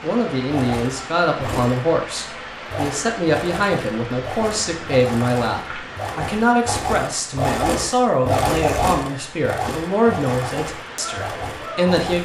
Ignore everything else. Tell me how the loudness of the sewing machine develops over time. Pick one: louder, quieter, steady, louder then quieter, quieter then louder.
louder then quieter.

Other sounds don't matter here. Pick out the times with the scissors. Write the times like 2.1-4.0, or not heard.
not heard.